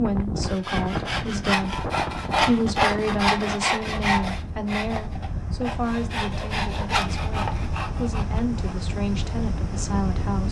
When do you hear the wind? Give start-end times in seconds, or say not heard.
0.0-10.4.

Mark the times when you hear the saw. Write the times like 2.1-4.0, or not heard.
0.2-8.8.